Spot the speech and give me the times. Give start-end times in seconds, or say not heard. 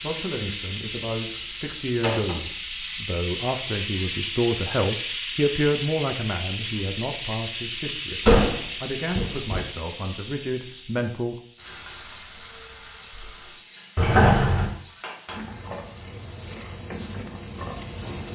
0.0-11.3.